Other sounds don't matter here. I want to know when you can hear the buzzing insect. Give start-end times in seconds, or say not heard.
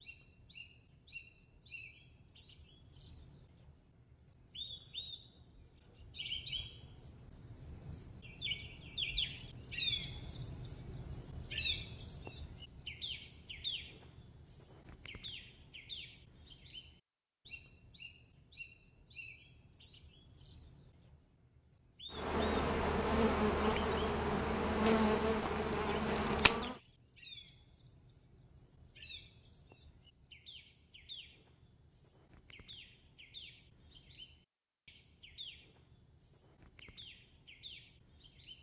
22.1-26.8.